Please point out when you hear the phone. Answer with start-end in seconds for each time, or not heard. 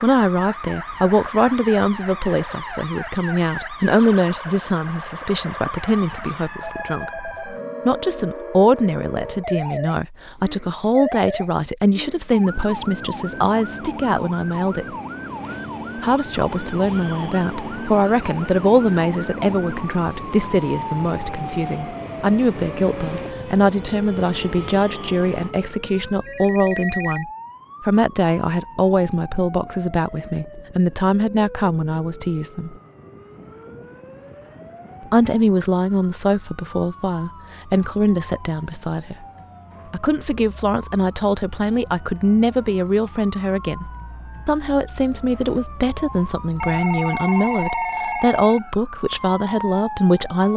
6.5-7.5, 26.2-27.2, 46.6-48.6.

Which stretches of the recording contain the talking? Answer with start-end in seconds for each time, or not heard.
0.0-14.8, 15.9-32.8, 35.1-39.2, 39.9-50.5.